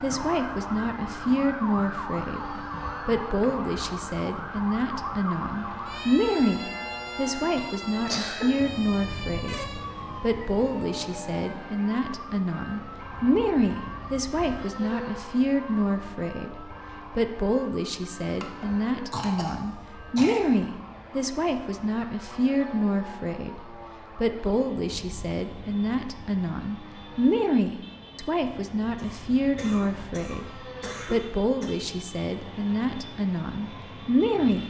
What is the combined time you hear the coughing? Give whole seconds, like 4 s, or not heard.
6 s.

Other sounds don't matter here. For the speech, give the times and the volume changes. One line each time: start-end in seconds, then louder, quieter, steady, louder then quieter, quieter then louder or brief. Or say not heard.
0.0-34.6 steady.